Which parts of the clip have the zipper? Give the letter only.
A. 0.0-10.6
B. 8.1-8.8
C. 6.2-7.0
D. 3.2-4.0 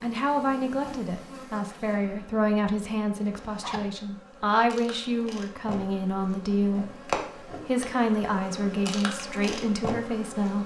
D.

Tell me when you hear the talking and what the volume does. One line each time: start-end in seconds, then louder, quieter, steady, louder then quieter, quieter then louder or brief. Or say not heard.
0.0-10.6 steady.